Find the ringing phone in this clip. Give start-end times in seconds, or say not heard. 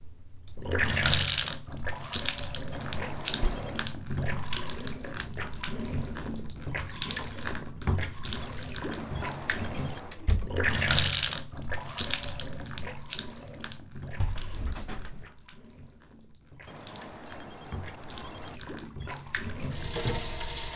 2.7-3.9, 8.9-10.2, 16.6-18.6.